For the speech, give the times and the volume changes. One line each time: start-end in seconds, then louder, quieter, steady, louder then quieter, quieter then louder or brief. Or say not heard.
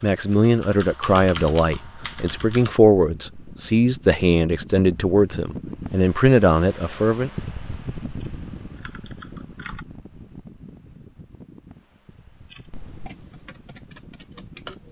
0.0-7.3 steady.